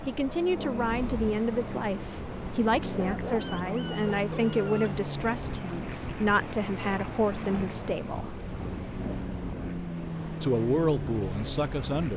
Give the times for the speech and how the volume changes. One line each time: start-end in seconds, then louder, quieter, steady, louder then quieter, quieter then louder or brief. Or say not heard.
0.1-8.4 steady
10.4-12.1 brief.